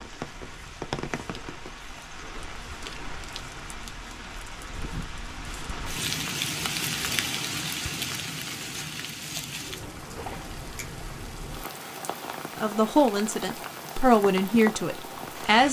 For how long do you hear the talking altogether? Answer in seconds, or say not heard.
3 s.